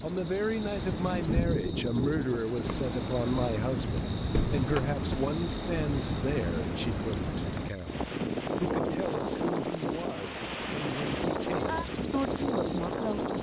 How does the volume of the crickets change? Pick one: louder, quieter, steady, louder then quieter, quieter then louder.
steady.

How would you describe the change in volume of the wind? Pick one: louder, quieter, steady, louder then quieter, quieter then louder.
steady.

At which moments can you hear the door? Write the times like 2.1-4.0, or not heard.
4.0-5.2.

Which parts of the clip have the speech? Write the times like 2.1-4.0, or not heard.
0.0-13.3.